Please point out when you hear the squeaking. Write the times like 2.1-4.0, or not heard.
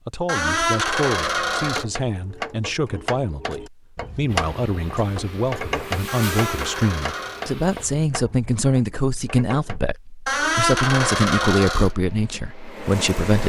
0.2-1.9, 6.0-7.5, 10.2-11.9.